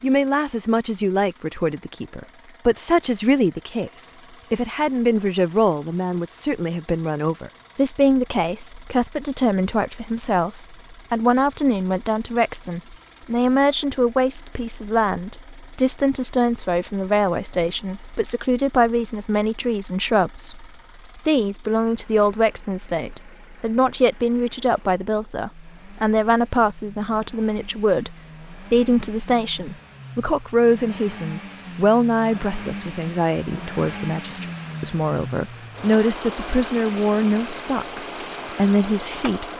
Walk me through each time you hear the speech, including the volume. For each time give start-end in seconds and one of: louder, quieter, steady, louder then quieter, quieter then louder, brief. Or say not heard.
0.0-39.5 steady.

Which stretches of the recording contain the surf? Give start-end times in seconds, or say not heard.
not heard.